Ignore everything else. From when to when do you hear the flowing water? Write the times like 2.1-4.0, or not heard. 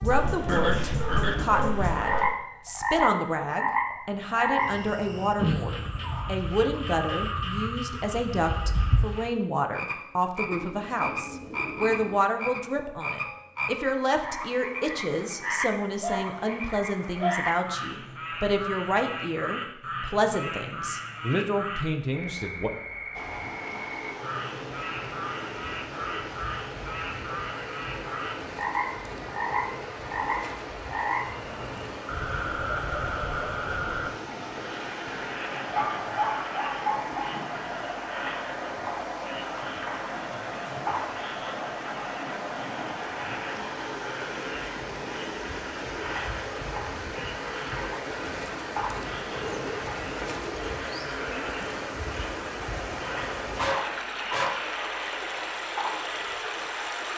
23.1-57.1.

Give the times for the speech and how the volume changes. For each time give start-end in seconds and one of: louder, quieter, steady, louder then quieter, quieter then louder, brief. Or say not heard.
0.0-22.7 steady.